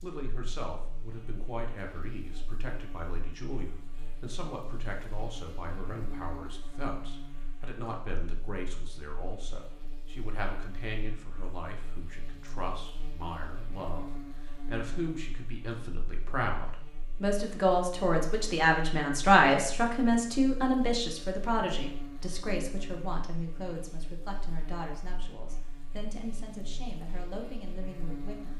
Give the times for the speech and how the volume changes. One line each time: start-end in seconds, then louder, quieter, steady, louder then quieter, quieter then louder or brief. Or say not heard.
0.0-28.5 louder then quieter.